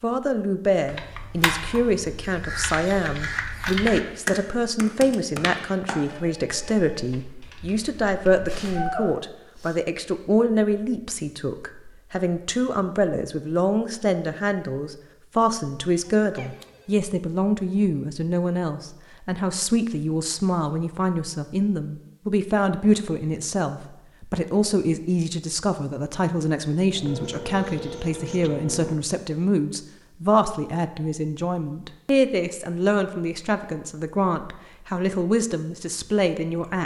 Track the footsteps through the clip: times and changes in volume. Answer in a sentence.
The footsteps can't be heard in this clip.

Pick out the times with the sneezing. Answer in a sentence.
You can hear the sneezing from 8.4 to 9.8 s, from 16.0 to 16.6 s and from 27.5 to 28.5 s.